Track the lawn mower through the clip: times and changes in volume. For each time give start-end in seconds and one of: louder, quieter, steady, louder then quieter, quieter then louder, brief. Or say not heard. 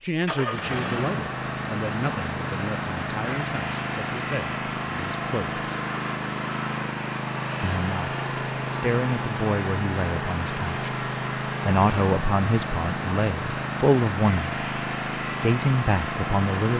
0.0-16.7 steady.